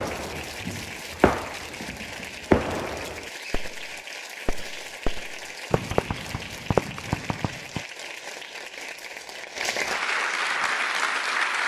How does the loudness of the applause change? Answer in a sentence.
The volume of the applause goes up.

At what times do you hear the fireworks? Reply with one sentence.
The fireworks can be heard from 0.0 to 7.8 s.